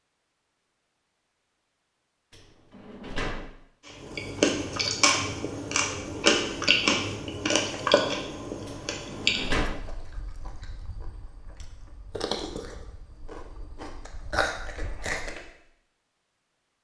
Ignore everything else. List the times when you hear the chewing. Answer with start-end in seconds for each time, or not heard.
3.9-15.5.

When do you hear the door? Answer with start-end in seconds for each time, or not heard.
2.3-3.5, 8.7-9.8.